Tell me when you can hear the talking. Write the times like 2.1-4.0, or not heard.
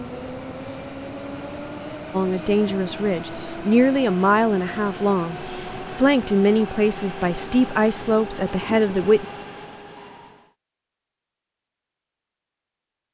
2.1-9.2.